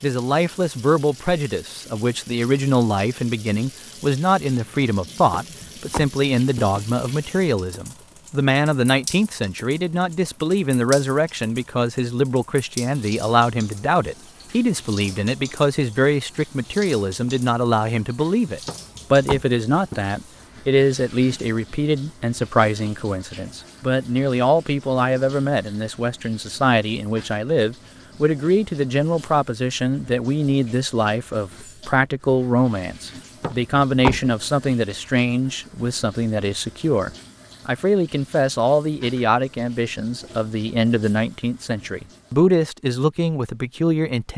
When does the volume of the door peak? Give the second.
34 s.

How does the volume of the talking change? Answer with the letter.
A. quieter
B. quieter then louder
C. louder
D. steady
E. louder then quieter
D.